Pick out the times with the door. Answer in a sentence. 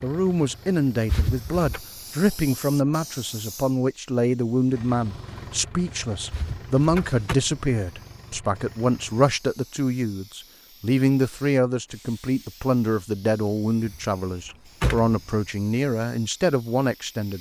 You can hear the door from 1.1 to 1.8 s, from 6.3 to 7.3 s and from 13.8 to 15.2 s.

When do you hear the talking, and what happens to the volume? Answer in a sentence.
You can hear the talking from 0.0 to 17.3 s, at a steady volume.